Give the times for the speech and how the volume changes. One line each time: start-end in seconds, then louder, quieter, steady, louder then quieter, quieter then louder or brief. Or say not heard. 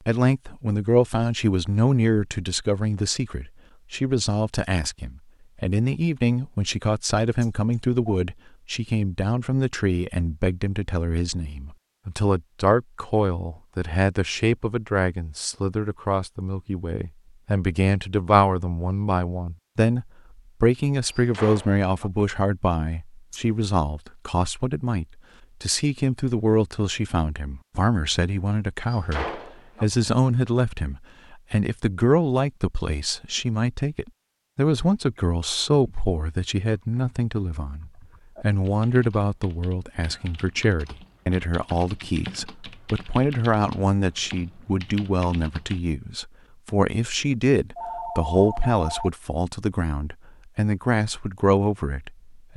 0.1-52.5 steady.